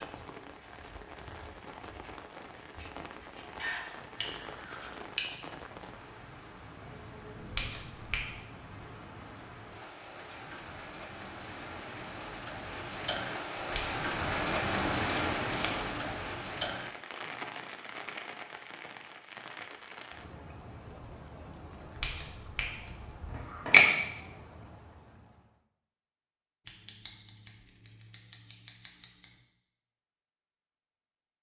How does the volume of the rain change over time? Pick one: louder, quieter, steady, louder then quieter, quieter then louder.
louder then quieter.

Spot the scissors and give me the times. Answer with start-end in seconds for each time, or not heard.
3.5-5.3, 14.9-16.2, 26.6-29.4.